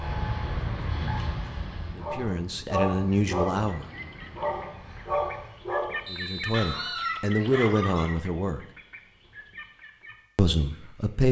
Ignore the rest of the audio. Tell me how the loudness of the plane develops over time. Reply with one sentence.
The loudness of the plane goes down.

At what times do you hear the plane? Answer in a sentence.
You can hear the plane from 0.0 to 5.8 s.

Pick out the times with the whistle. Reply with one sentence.
The whistle can be heard from 6.0 to 7.2 s.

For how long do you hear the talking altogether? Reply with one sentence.
You can hear the talking for 5 seconds altogether.